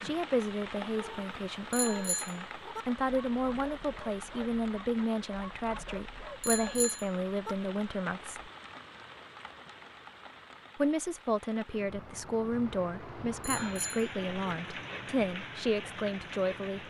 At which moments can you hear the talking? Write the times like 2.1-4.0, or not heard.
0.0-8.5, 10.8-16.8.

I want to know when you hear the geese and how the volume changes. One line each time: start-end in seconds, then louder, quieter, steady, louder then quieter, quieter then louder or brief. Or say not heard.
not heard.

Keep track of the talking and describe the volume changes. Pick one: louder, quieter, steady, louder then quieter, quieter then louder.
steady.